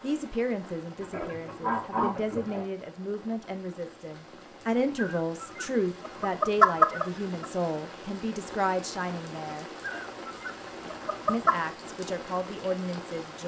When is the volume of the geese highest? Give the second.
7 s.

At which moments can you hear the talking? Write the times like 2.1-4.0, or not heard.
0.0-9.7, 11.2-13.4.